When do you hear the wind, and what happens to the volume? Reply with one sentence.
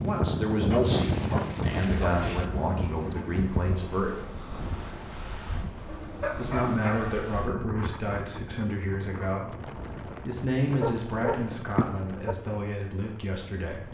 You can hear the wind from 0.0 to 13.8 s, getting quieter.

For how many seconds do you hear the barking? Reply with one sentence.
You can hear the barking for 5 seconds altogether.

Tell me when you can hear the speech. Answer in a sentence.
The speech can be heard from 0.0 to 4.2 s and from 6.3 to 13.8 s.